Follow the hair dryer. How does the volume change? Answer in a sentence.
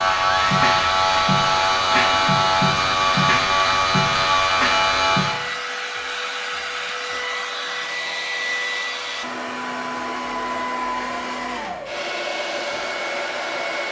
The volume of the hair dryer stays about the same.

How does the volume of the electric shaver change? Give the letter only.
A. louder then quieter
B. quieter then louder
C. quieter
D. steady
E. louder
D.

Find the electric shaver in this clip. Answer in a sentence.
The electric shaver can be heard from 0.0 to 5.5 s.